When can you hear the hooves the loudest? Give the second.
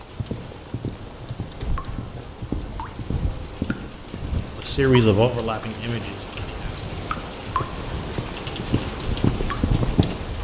9 s.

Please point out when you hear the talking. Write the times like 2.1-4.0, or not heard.
4.5-6.7.